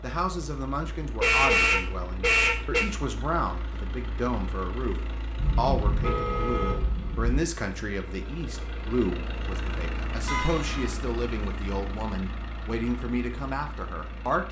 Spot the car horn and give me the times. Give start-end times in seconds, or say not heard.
1.2-2.9, 5.3-7.4, 10.2-10.9.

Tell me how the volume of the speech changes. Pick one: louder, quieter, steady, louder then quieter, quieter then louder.
steady.